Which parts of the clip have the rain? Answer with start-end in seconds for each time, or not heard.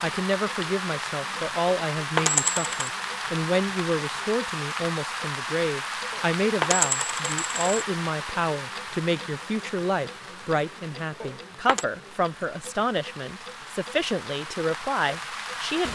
0.0-15.9.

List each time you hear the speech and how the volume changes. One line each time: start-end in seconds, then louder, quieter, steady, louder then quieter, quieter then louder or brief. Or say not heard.
0.0-15.9 steady.